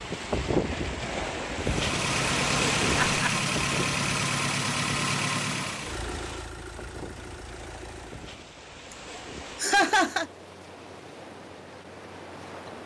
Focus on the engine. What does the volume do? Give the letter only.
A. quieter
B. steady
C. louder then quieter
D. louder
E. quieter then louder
A.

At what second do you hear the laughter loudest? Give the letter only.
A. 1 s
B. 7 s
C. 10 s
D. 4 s
C.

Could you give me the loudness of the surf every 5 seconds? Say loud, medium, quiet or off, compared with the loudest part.
loud, quiet, quiet.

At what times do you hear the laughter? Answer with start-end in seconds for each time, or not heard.
2.9-3.4, 8.9-10.2.